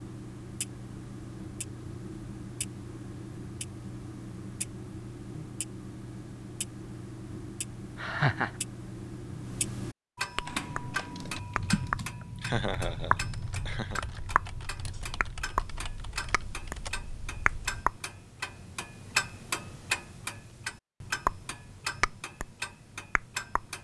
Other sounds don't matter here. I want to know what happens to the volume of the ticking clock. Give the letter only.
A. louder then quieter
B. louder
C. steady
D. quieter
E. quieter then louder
B.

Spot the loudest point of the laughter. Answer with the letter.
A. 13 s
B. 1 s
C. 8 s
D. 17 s
C.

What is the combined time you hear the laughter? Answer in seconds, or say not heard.
2 s.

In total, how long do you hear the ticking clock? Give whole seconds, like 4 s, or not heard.
24 s.